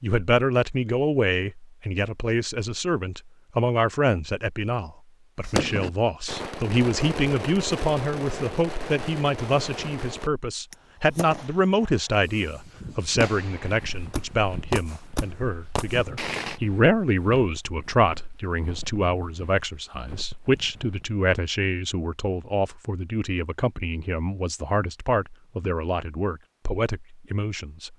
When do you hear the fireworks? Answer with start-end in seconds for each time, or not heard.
5.5-16.6.